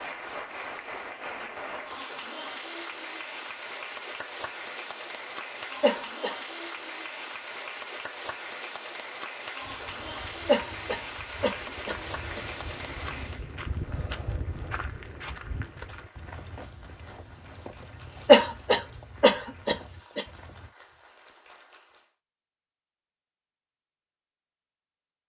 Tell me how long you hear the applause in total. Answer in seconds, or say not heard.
22 s.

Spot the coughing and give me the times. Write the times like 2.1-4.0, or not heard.
5.8-6.3, 10.4-12.4, 18.2-20.2.